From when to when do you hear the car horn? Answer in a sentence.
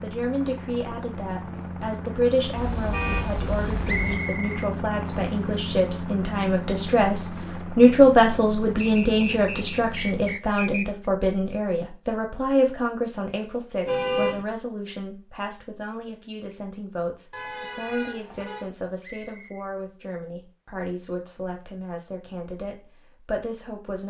You can hear the car horn from 2.5 to 4.2 s, from 13.8 to 14.4 s and from 17.3 to 18.7 s.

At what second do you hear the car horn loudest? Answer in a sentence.
The loudest moment of the car horn is at 14 seconds.